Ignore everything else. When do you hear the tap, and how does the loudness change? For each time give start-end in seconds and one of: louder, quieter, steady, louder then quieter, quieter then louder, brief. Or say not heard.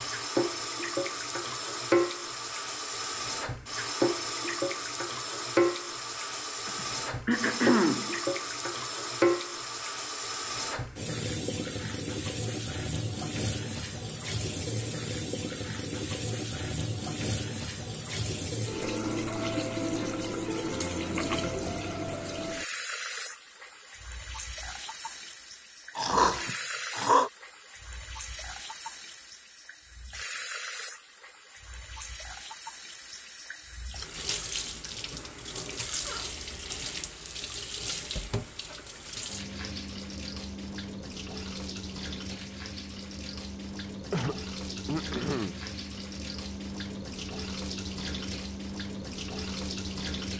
0.0-50.3 quieter.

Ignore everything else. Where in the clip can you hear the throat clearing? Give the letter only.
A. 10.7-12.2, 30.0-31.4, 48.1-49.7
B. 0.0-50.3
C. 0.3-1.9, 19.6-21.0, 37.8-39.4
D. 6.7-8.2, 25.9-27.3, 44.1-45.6
D.